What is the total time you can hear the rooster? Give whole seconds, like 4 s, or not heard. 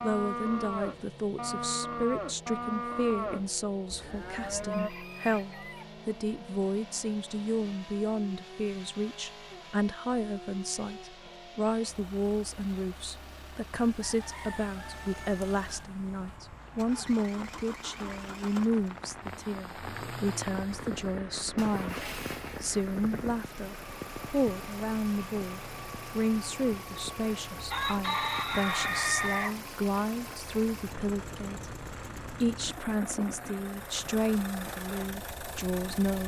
6 s.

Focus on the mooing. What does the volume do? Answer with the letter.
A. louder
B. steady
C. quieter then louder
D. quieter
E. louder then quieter
D.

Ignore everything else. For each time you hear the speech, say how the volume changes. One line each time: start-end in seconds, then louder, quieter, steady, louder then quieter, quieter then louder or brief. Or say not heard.
0.0-36.2 steady.